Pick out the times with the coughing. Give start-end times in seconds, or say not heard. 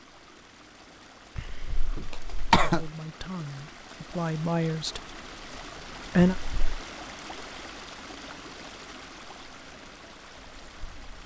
1.4-2.9, 6.3-6.8.